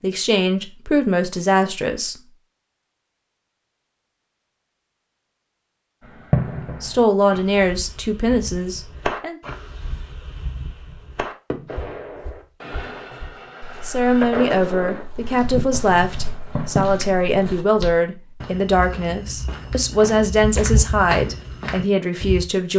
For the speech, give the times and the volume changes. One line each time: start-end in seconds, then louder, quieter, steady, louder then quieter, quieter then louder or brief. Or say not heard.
0.0-2.1 brief
6.8-9.4 brief
13.8-22.7 steady.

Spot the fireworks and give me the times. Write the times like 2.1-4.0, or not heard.
6.0-17.2.